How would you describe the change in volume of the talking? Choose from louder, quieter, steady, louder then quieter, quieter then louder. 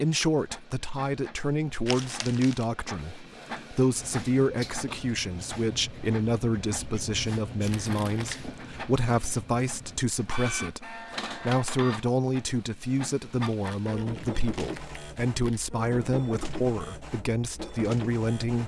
steady.